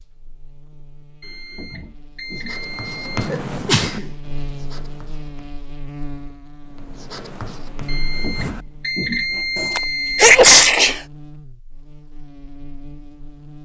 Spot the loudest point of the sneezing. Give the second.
10 s.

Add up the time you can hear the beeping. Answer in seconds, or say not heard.
5 s.